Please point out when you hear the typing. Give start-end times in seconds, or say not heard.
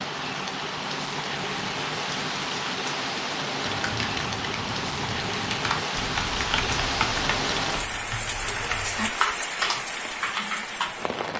3.6-10.9.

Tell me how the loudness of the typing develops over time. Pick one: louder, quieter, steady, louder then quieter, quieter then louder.
louder.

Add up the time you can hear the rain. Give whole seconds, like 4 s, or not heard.
11 s.